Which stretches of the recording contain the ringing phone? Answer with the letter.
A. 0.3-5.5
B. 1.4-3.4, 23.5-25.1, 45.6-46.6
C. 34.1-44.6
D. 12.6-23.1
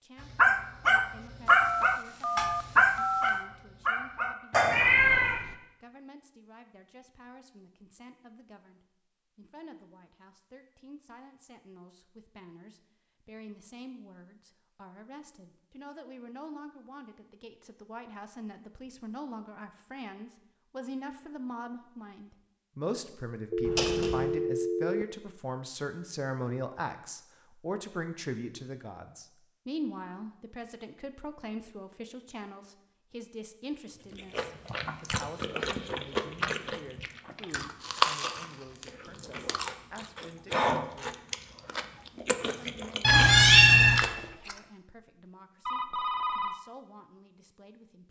B.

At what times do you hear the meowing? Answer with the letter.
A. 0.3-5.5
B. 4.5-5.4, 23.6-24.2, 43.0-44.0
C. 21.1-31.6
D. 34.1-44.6
B.